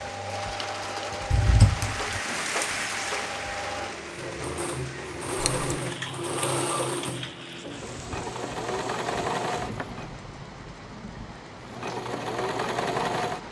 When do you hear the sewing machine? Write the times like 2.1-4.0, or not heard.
0.0-10.2, 11.6-13.4.